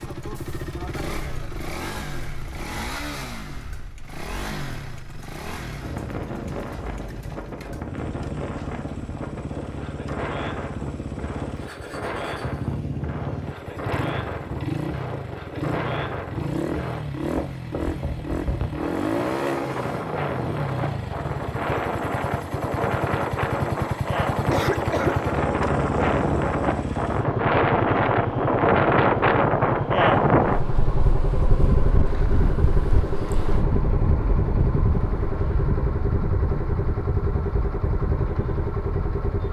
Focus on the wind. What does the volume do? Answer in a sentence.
The loudness of the wind goes up, then down.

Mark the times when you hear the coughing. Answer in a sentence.
You can hear the coughing from 24.3 to 25.4 s.